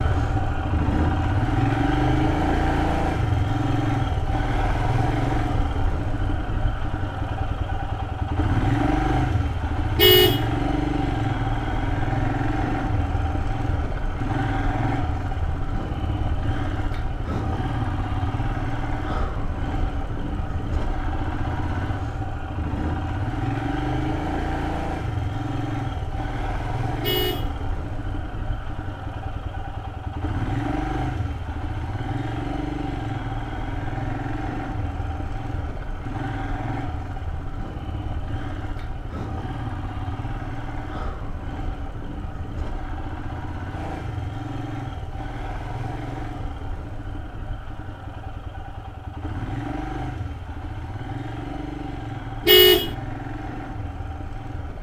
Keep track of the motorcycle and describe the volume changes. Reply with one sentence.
The loudness of the motorcycle goes down.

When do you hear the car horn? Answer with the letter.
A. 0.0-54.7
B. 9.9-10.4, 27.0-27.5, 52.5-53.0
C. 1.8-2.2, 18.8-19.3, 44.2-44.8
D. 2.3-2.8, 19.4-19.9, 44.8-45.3
B.